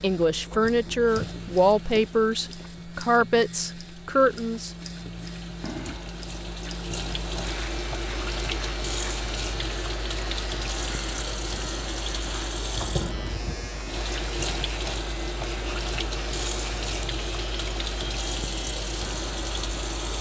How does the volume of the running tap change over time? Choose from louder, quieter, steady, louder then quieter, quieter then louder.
louder.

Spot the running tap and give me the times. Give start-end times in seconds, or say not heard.
0.0-20.1.